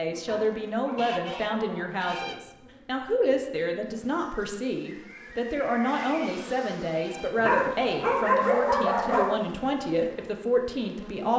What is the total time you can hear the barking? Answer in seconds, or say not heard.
4 s.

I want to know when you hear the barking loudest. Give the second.
8 s.